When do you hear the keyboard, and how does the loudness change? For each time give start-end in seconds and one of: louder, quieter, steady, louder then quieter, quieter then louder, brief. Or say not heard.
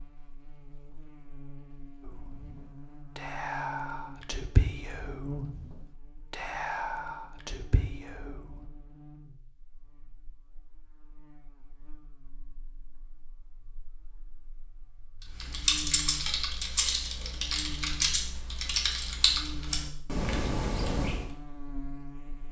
15.3-21.2 steady.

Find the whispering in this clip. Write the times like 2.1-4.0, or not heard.
2.0-8.7.